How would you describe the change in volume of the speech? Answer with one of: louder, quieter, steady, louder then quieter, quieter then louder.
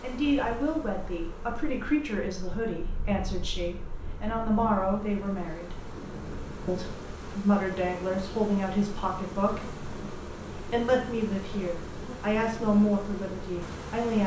steady.